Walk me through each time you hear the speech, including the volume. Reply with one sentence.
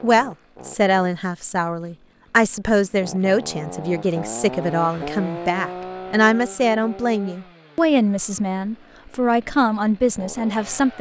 The speech can be heard from 0.0 to 10.9 s, at a steady volume.